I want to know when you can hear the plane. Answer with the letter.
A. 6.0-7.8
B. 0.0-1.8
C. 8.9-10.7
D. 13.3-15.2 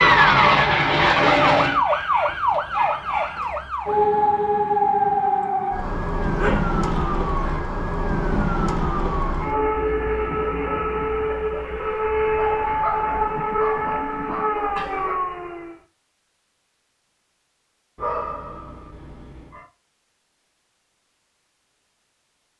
B.